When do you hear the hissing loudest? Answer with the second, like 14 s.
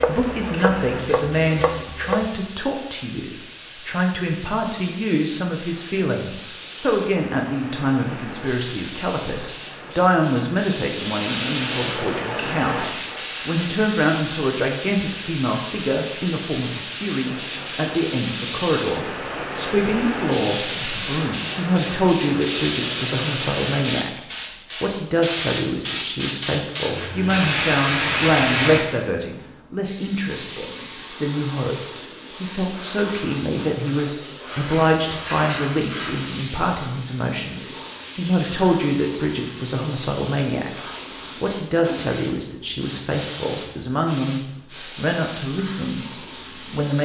28 s.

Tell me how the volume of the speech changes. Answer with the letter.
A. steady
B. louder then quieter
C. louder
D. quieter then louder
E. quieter
A.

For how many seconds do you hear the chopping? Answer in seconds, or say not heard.
2 s.